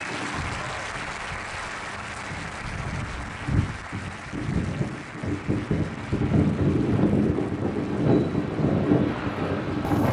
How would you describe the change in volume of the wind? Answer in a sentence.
The loudness of the wind goes up.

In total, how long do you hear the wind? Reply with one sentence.
You can hear the wind for 10 seconds altogether.